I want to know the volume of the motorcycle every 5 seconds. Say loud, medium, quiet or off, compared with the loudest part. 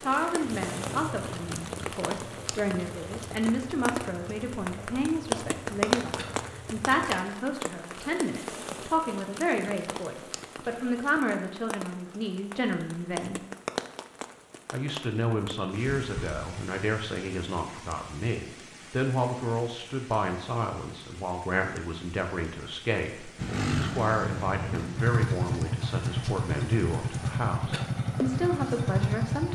quiet, quiet, off, off, loud, loud.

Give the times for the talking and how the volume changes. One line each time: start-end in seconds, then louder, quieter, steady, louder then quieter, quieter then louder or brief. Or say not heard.
0.0-13.4 steady
14.7-29.4 steady.